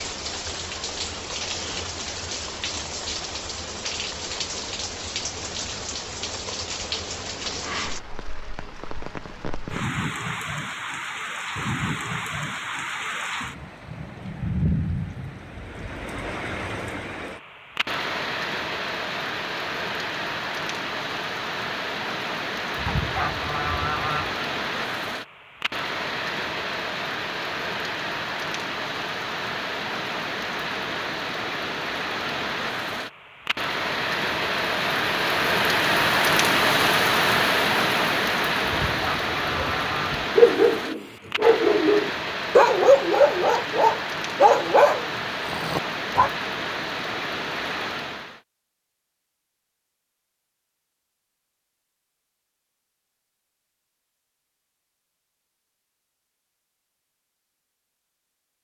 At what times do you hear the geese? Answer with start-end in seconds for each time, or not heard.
22.8-24.4, 38.6-40.2.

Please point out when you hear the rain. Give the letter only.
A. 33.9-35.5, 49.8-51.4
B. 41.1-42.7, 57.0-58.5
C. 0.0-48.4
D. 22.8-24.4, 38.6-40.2
C.